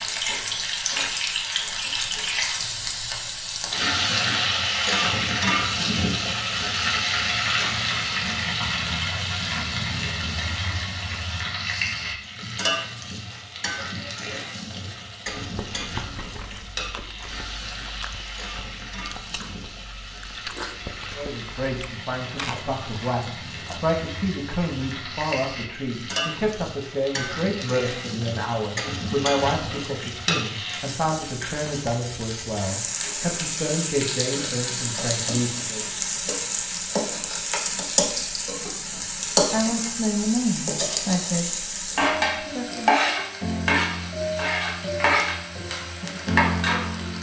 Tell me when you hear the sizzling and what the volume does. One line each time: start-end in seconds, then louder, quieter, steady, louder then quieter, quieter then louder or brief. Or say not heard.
0.0-47.1 quieter then louder.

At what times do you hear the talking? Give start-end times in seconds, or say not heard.
21.1-35.9, 39.0-43.0.